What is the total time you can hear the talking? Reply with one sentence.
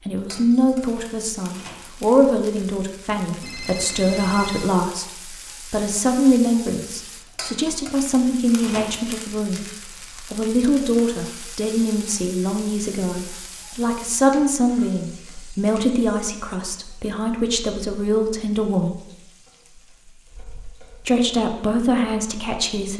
You can hear the talking for 21 seconds altogether.